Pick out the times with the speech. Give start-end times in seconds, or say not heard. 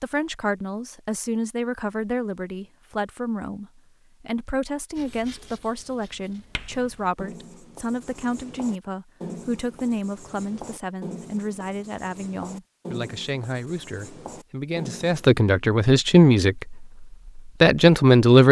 0.0-18.4.